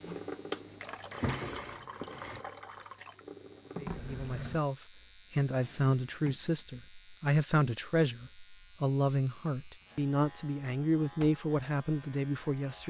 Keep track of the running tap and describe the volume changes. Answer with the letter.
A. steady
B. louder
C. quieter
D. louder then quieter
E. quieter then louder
E.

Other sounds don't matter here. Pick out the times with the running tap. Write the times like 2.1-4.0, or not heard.
0.0-4.6.